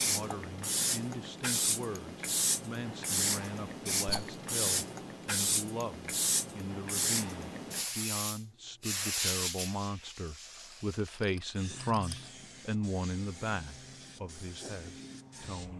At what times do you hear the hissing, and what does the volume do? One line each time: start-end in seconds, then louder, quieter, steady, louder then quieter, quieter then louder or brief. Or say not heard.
0.0-15.7 quieter.